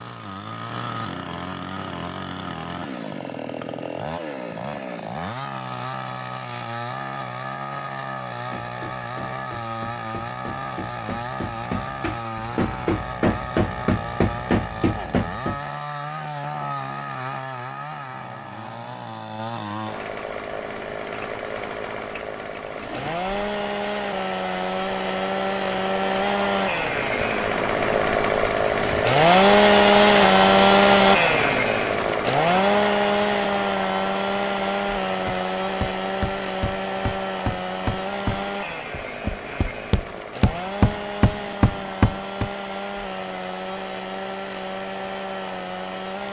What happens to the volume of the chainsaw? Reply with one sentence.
The volume of the chainsaw goes up, then down.